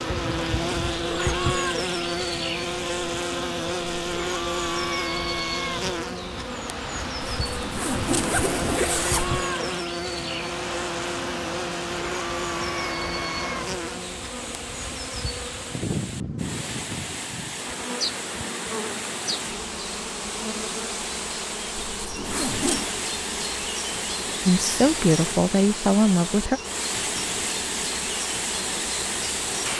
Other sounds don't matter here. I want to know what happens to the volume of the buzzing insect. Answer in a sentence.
The volume of the buzzing insect goes down.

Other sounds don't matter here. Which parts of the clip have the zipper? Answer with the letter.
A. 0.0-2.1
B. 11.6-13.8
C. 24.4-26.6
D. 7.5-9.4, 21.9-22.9
D.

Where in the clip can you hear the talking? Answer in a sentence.
The talking can be heard from 24.4 to 26.6 s.